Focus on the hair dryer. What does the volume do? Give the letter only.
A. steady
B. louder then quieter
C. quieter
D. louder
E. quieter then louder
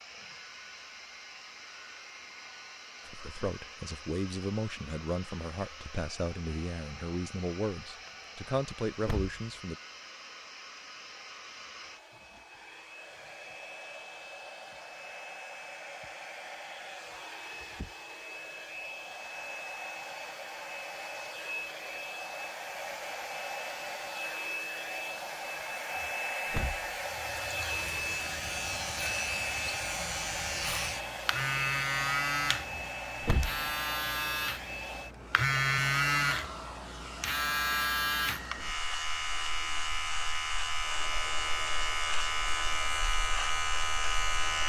B.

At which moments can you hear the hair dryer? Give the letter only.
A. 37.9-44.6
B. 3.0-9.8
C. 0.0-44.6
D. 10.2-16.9
C.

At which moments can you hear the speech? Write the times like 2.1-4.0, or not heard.
3.0-9.8.